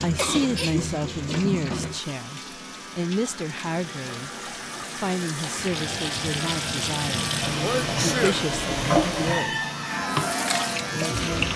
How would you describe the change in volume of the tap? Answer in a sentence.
The loudness of the tap goes down, then up.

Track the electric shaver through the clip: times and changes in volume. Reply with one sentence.
The electric shaver can be heard from 0.0 to 11.5 s, getting louder.